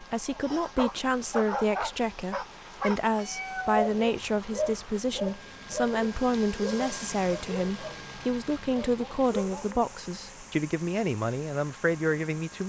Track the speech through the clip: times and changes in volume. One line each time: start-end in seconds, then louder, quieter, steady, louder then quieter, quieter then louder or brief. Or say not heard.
0.0-12.6 steady.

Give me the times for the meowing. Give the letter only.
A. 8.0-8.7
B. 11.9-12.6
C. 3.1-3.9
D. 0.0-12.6
C.